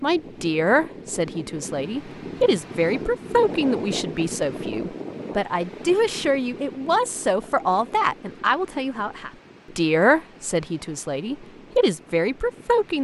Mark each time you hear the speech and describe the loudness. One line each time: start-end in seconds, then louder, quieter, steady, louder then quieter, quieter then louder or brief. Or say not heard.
0.0-12.9 steady.